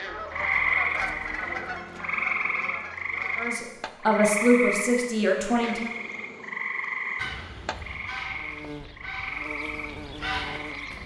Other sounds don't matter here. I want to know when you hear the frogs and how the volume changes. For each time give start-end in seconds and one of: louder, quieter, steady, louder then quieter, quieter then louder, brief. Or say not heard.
0.0-11.0 quieter.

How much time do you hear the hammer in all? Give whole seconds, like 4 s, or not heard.
not heard.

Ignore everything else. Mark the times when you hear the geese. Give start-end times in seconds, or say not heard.
0.0-3.5, 7.2-11.0.